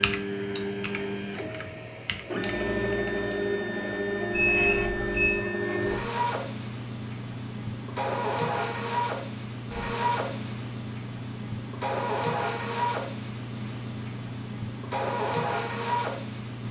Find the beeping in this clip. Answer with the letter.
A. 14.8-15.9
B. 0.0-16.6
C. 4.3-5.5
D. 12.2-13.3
C.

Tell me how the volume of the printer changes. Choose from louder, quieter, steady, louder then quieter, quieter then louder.
steady.